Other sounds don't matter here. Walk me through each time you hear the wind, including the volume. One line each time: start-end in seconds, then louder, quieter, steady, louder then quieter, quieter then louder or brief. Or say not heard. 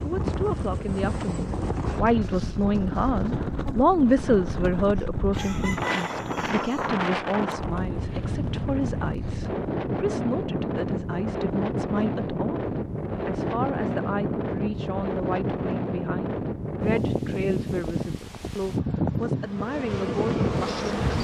0.0-21.1 steady.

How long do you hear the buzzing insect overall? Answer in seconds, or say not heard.
5 s.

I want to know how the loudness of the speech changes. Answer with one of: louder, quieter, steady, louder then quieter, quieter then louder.
quieter.